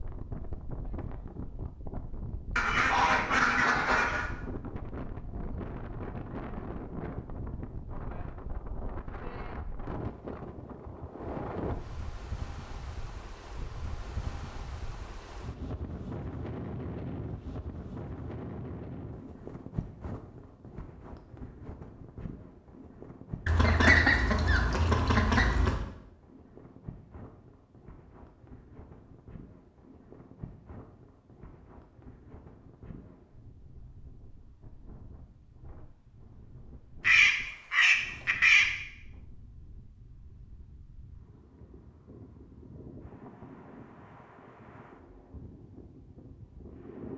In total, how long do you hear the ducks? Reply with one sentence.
The ducks can be heard for 6 seconds in total.